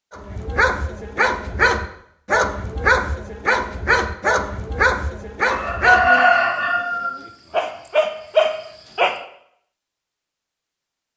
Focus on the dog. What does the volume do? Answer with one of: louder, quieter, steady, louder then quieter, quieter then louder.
quieter then louder.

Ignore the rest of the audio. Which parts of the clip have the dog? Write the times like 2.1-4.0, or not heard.
0.1-9.2.